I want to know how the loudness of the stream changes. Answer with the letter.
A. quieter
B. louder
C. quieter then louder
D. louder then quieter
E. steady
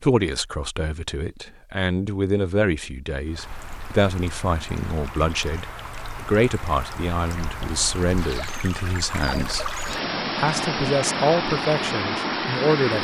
B.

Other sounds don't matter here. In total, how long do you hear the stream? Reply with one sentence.
The stream can be heard for 10 seconds in total.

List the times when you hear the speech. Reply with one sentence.
You can hear the speech from 0.0 to 9.8 s and from 10.3 to 12.9 s.